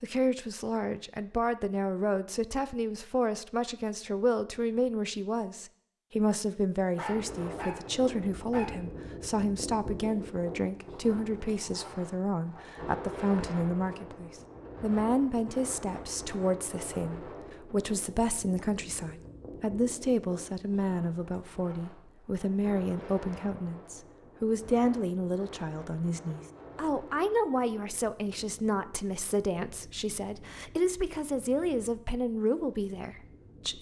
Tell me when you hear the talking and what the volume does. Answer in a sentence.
The talking can be heard from 0.0 to 33.7 s, at a steady volume.